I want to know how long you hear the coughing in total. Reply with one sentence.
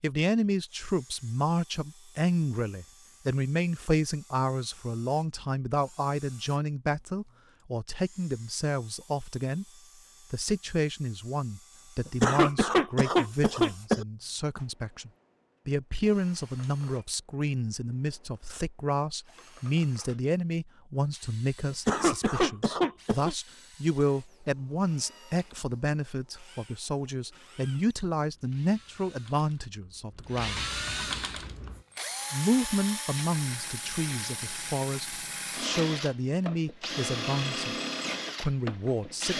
You can hear the coughing for 4 seconds altogether.